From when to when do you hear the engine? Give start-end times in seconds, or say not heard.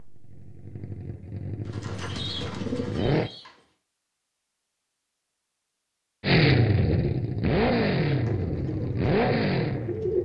0.0-3.3, 6.2-10.2.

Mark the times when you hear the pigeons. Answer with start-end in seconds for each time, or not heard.
1.6-3.7, 8.1-10.2.